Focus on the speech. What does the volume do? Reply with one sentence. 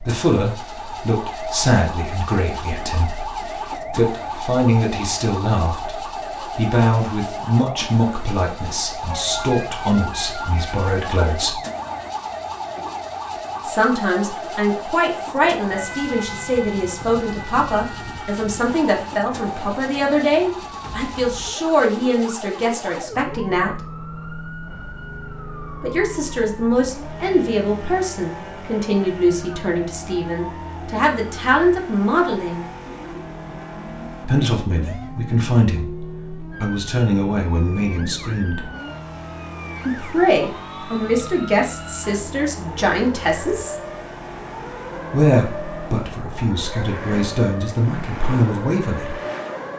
The loudness of the speech stays about the same.